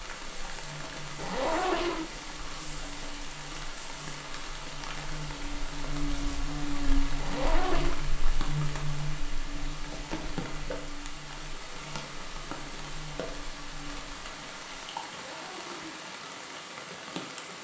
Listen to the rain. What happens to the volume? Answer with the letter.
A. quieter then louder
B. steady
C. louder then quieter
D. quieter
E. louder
B.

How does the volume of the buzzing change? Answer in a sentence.
The loudness of the buzzing goes up, then down.